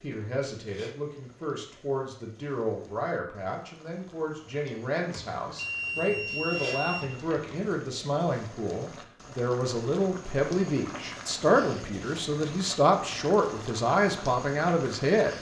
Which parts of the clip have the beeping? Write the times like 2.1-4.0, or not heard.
5.1-7.8.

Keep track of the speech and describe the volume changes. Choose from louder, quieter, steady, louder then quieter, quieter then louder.
louder.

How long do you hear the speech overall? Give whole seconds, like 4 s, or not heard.
15 s.